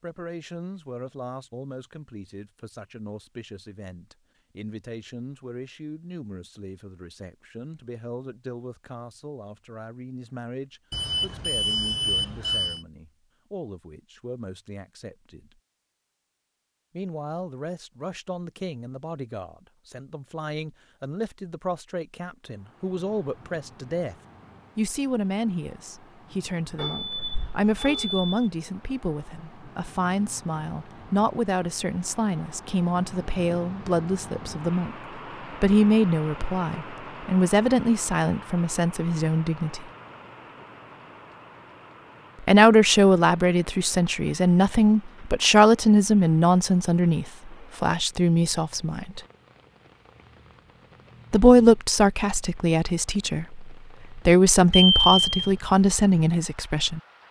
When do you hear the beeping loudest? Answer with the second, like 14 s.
55 s.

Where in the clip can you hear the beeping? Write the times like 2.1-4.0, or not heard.
10.9-12.8, 26.8-28.2, 54.7-55.5.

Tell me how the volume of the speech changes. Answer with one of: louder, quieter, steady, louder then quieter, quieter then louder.
louder.